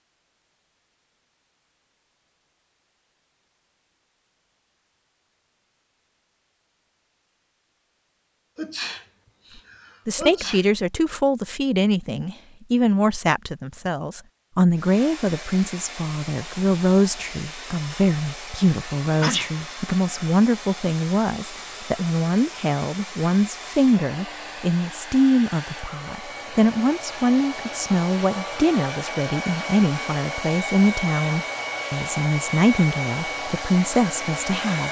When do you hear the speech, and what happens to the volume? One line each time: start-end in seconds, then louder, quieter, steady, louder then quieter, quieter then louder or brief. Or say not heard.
10.1-34.8 steady.